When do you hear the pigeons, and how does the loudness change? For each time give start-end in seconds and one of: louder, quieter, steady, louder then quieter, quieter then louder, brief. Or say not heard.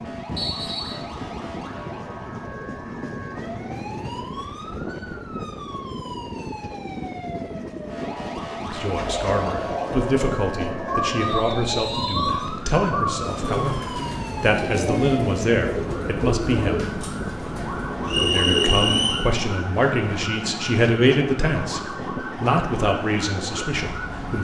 8.8-19.1 steady.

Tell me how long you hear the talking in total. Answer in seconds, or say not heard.
14 s.